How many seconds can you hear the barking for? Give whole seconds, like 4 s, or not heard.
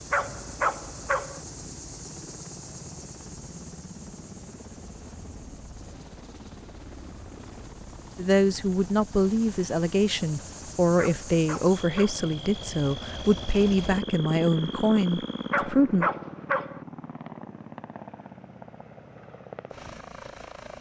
4 s.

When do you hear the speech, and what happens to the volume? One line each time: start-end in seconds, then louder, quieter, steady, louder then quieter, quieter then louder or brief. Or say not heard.
8.2-16.1 steady.